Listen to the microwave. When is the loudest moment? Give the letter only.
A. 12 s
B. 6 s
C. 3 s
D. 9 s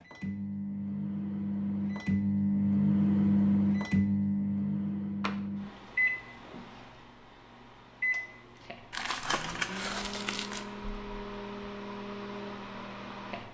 C.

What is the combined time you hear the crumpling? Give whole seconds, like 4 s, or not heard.
2 s.